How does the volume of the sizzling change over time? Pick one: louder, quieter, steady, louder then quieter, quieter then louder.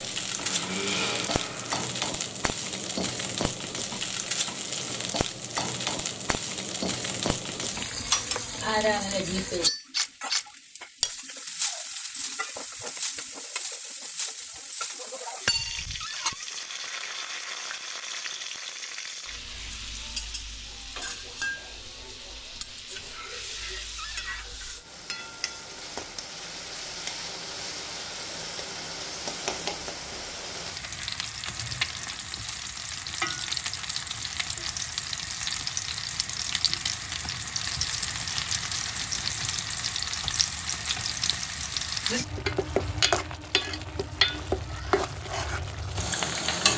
quieter then louder.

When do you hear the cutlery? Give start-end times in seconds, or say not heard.
8.1-16.3.